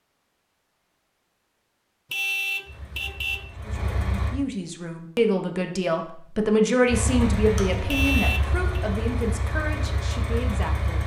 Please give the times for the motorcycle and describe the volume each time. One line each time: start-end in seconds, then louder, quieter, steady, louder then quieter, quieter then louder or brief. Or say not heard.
2.6-4.3 brief
6.8-11.0 steady.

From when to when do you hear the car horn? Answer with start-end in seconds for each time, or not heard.
2.1-3.5, 7.8-8.8.